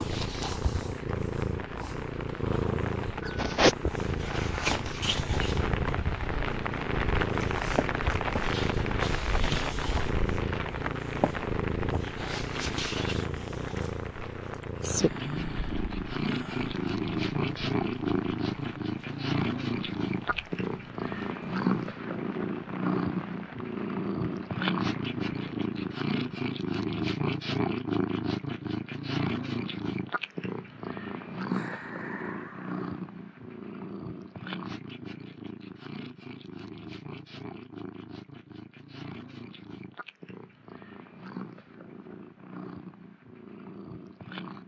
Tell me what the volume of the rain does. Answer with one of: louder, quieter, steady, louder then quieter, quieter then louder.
louder then quieter.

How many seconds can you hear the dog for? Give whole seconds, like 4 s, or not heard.
not heard.